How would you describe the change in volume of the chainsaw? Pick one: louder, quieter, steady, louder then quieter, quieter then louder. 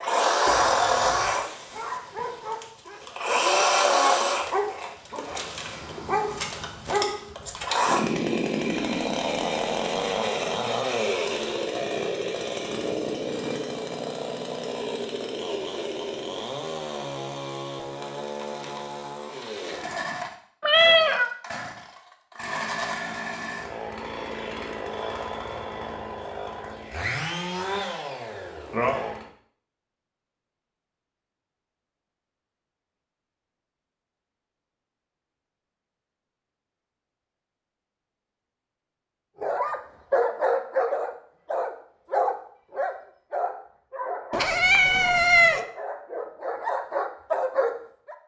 quieter.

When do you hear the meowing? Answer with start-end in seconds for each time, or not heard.
0.5-1.4, 20.6-21.3, 44.3-45.6.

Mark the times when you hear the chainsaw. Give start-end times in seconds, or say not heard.
0.0-29.2.